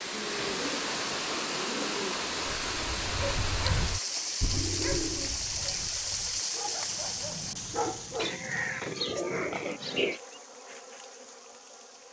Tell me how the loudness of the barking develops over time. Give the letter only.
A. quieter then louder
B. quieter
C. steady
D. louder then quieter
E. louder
A.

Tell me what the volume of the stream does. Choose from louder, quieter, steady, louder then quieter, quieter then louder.
quieter.